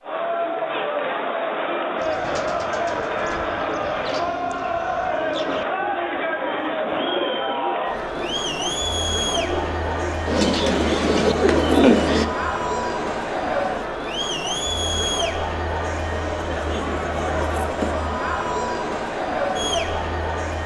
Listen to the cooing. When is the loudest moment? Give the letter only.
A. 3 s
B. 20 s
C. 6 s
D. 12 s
D.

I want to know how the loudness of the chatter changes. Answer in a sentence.
The loudness of the chatter stays about the same.